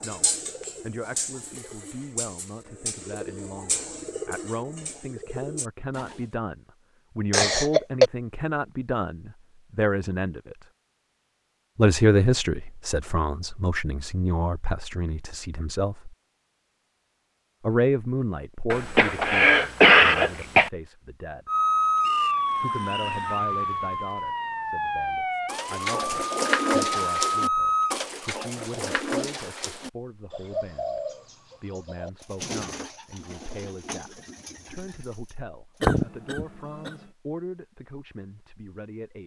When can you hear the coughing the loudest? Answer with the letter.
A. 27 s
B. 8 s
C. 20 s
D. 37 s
C.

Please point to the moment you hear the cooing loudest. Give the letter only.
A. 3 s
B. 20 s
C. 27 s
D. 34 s
C.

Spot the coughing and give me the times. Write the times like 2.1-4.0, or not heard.
7.3-8.1, 18.7-20.7, 35.8-36.9.